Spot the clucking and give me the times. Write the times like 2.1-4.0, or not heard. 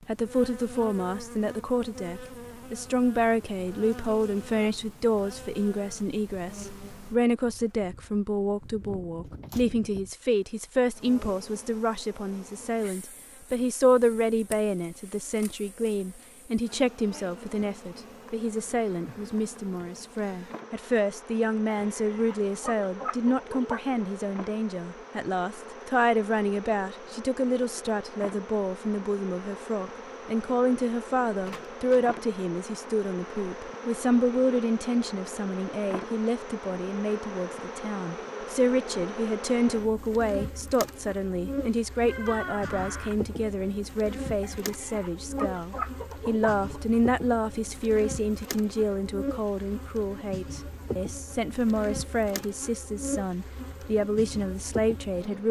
21.7-24.0, 44.4-46.9.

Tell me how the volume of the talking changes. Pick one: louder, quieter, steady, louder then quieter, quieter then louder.
steady.